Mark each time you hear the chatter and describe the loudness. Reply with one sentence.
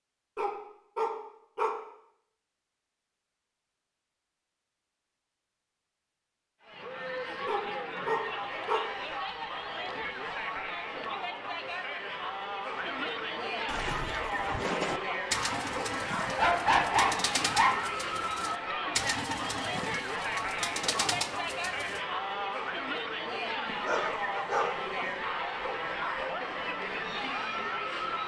You can hear the chatter from 6.6 to 28.2 s, at a steady volume.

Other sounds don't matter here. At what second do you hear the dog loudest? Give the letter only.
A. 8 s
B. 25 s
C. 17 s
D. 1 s
C.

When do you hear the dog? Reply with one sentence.
You can hear the dog from 0.3 to 1.8 s, from 7.5 to 8.9 s, from 16.2 to 17.8 s and from 23.6 to 25.1 s.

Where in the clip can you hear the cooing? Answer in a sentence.
The cooing can be heard from 13.7 to 22.0 s.